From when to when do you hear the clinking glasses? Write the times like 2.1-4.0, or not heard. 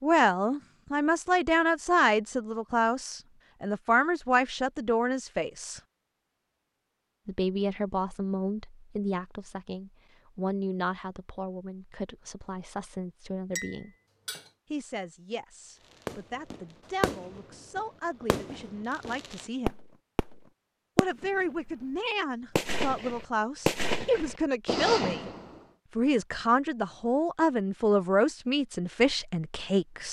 13.5-14.5.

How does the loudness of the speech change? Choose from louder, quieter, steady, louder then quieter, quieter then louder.
quieter then louder.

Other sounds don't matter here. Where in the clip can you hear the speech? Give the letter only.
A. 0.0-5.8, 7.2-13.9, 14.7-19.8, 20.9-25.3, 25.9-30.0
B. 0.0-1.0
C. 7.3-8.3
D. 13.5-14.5
A.